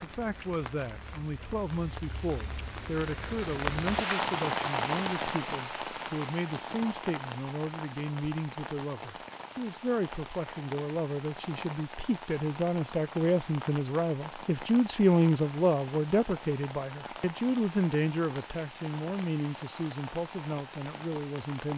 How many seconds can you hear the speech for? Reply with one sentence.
You can hear the speech for 22 seconds altogether.